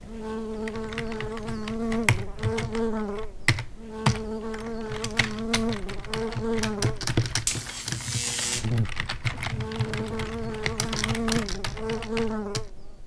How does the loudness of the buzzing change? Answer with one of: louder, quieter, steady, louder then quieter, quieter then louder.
steady.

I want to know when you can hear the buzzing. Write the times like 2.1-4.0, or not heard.
0.0-13.0.